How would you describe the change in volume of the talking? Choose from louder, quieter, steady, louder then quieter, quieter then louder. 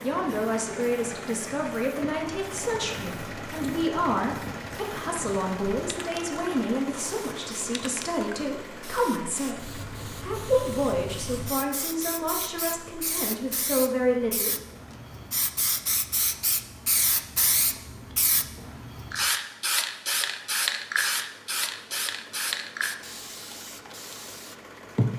steady.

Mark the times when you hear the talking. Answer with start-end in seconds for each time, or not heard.
0.0-14.6.